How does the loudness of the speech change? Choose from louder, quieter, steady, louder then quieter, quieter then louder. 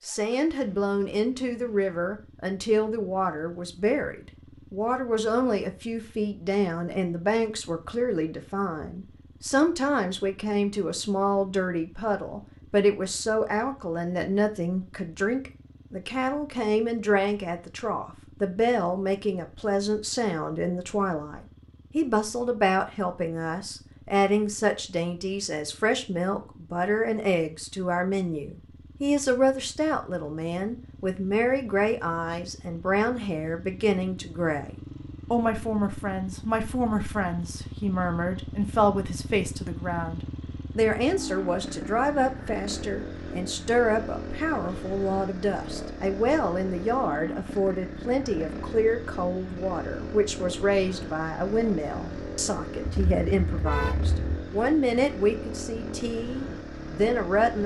steady.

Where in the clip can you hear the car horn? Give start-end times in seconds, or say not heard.
52.9-54.5.